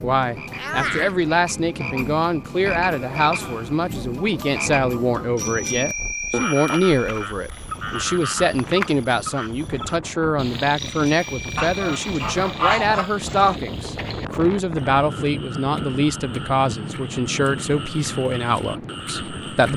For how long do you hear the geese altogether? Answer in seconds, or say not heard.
2 s.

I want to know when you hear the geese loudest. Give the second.
13 s.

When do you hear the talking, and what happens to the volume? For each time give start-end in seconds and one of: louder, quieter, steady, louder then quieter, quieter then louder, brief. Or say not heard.
0.0-19.7 steady.